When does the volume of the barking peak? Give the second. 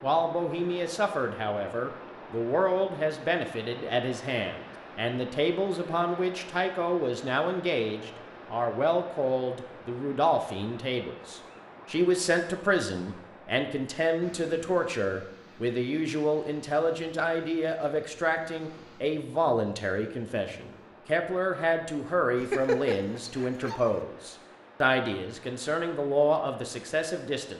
23 s.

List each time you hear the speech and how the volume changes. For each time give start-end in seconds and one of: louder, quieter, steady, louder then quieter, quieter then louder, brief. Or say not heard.
0.0-27.5 steady.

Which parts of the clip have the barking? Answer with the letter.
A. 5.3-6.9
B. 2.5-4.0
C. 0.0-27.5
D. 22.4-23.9
D.